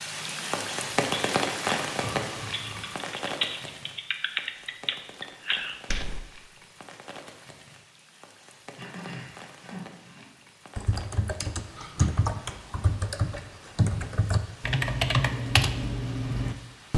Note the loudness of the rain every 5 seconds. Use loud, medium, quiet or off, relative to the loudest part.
loud, quiet, quiet, quiet.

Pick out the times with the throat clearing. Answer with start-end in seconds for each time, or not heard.
1.9-3.0, 8.8-10.2.